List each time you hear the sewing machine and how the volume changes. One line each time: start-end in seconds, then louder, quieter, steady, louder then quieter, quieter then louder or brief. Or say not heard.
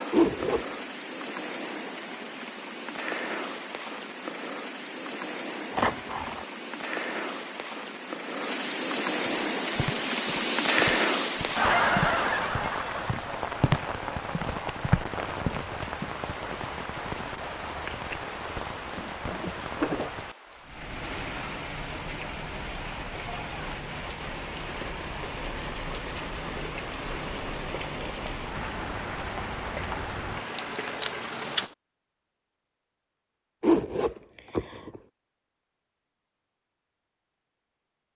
not heard.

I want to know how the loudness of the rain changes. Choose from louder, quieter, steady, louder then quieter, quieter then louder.
louder then quieter.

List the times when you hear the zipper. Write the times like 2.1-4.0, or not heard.
0.1-0.7, 33.6-35.0.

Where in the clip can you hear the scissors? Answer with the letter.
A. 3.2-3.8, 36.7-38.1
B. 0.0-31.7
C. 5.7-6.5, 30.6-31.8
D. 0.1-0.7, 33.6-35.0
C.